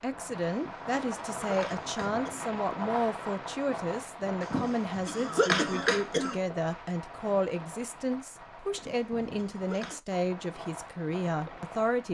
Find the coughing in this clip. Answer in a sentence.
The coughing can be heard from 0.5 to 2.5 s, from 4.4 to 6.4 s and from 8.7 to 10.0 s.